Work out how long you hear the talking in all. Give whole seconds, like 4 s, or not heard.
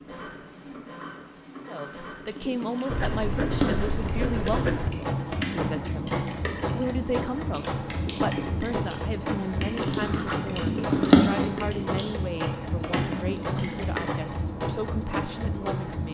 14 s.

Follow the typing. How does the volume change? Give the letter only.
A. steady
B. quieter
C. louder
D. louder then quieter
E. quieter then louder
D.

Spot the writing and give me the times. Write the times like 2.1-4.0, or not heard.
2.9-4.9, 9.9-11.3.